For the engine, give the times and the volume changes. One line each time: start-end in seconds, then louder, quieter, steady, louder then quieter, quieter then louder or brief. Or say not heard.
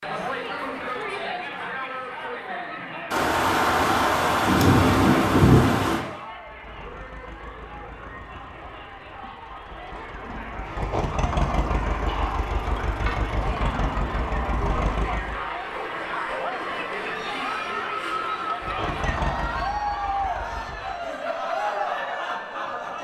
6.2-15.4 louder
18.6-21.1 brief.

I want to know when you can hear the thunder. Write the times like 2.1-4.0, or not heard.
3.1-6.0.